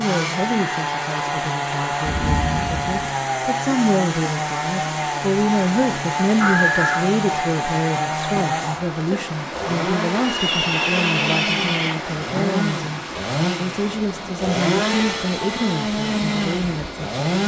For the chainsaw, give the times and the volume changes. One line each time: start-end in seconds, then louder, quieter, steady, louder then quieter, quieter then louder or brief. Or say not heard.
0.0-17.4 steady.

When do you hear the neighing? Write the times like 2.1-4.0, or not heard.
6.4-7.0, 10.2-11.9.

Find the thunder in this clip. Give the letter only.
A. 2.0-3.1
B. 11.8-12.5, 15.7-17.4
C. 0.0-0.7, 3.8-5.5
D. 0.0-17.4
A.